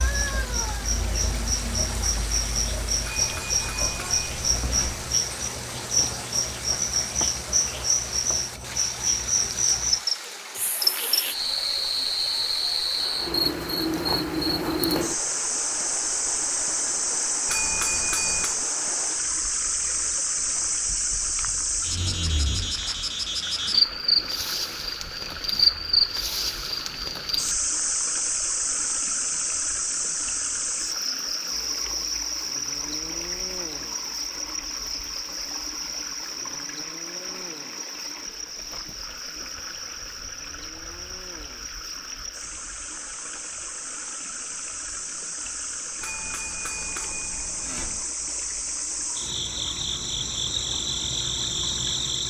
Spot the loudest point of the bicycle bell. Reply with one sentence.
The loudest moment of the bicycle bell is at 18 seconds.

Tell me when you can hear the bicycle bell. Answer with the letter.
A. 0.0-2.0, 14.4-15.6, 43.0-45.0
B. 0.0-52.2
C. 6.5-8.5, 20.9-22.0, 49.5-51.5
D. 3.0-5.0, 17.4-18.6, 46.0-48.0
D.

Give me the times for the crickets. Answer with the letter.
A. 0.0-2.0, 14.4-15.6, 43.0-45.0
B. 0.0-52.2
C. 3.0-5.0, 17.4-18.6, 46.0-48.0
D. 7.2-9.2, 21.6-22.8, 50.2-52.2
B.